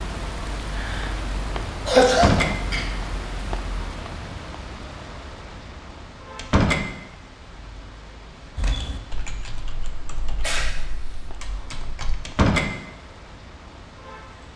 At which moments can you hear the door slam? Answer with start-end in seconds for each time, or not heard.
2.0-2.5, 6.3-6.8, 12.2-12.7.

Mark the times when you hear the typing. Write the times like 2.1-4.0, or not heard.
8.6-12.2.